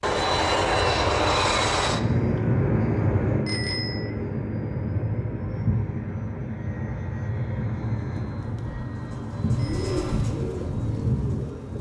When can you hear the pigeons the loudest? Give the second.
10 s.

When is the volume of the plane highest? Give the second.
1 s.